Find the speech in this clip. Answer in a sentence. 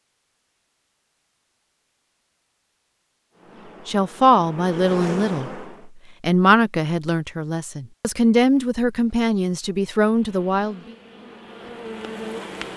You can hear the speech from 3.9 to 10.9 s.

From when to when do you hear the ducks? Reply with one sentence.
The ducks can't be heard in this clip.